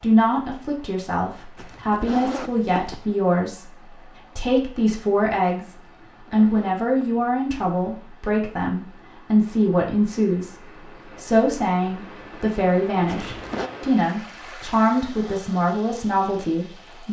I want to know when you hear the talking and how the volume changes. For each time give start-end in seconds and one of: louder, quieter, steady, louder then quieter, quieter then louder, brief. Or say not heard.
0.0-17.0 steady.